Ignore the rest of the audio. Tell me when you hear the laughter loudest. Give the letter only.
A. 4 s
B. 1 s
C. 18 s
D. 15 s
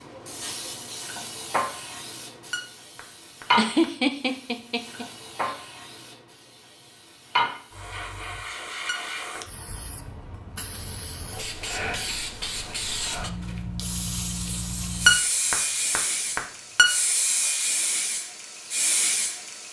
A.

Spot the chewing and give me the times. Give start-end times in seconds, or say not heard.
not heard.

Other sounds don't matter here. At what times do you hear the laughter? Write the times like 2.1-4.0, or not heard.
3.5-5.5.